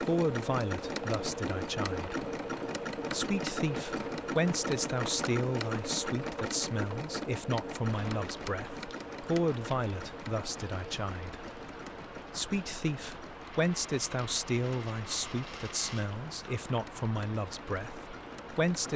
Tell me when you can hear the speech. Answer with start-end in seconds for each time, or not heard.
0.0-2.2, 3.1-11.4, 12.3-18.9.